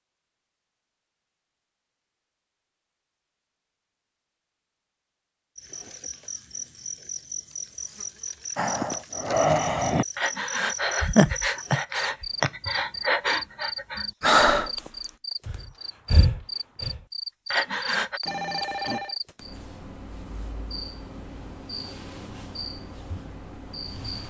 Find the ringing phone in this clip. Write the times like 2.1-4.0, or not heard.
18.2-19.1.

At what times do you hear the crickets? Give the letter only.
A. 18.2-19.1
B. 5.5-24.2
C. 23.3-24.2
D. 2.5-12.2
B.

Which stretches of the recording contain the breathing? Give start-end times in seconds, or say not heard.
8.6-18.2.